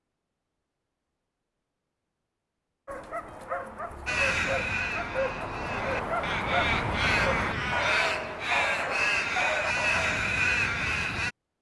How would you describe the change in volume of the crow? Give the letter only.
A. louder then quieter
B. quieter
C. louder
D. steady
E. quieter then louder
C.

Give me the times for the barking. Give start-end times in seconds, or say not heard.
2.9-10.3.